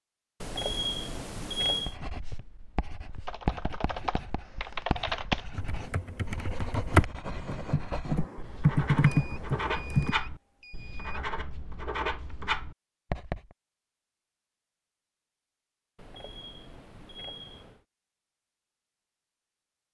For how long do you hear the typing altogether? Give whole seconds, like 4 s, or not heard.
7 s.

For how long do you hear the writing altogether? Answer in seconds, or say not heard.
12 s.